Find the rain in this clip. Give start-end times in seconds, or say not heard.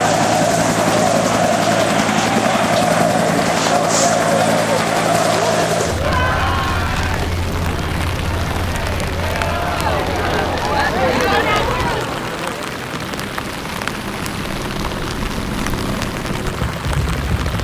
0.0-17.5.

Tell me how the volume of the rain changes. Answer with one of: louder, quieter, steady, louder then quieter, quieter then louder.
steady.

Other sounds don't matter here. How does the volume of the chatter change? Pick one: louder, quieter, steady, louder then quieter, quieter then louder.
quieter then louder.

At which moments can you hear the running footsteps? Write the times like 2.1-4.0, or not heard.
not heard.